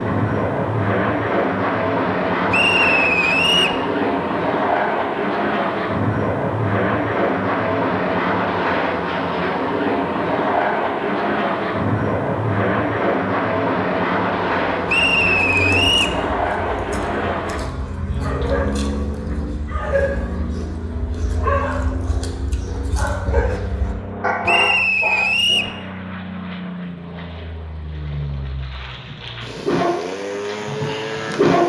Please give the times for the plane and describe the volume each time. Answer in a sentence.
You can hear the plane from 0.0 to 31.6 s, getting quieter.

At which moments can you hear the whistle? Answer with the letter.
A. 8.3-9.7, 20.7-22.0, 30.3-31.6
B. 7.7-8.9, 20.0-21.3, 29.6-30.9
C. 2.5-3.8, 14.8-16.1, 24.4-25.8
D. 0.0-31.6
C.